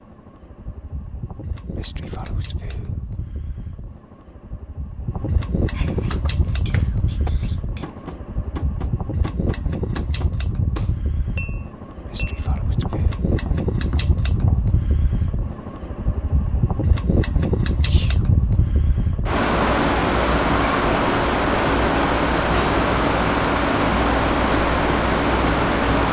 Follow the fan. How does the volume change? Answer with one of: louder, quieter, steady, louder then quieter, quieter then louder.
louder.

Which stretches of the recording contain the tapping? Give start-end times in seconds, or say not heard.
6.1-15.5.